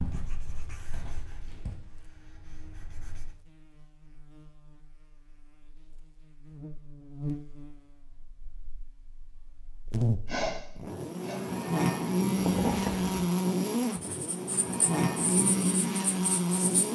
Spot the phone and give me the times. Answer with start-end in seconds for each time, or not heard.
not heard.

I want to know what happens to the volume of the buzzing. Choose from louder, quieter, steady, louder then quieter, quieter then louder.
louder.